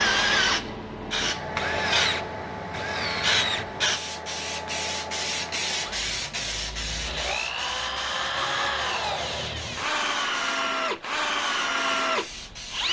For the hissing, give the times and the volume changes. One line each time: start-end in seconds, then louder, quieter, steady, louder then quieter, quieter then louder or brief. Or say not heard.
0.0-12.8 quieter.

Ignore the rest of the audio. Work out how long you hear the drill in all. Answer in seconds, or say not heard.
13 s.